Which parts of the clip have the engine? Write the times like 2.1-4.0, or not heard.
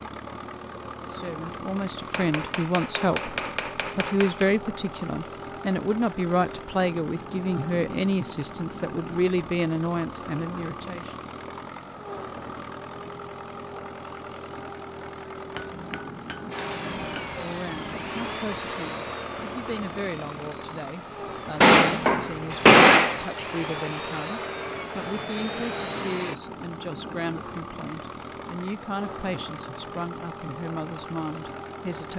0.0-32.1.